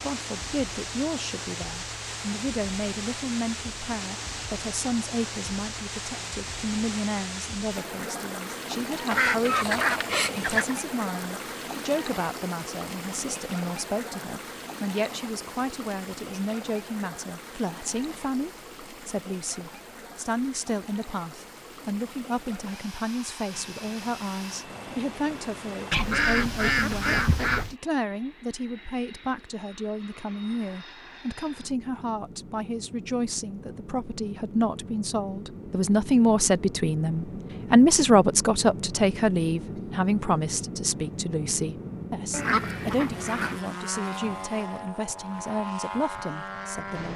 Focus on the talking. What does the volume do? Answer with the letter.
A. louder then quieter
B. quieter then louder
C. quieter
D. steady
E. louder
E.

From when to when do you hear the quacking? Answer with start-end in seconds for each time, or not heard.
9.1-10.8, 25.9-27.8, 42.3-43.6.